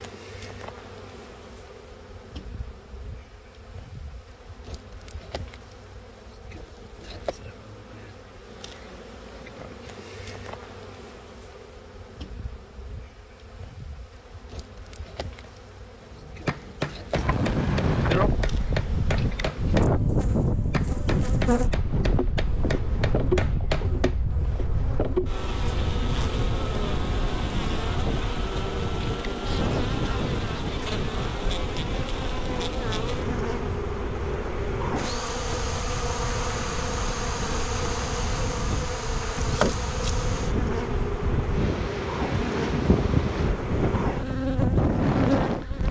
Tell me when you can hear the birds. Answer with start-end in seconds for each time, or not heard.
not heard.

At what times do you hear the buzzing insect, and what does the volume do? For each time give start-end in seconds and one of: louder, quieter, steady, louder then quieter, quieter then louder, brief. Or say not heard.
0.0-45.8 louder.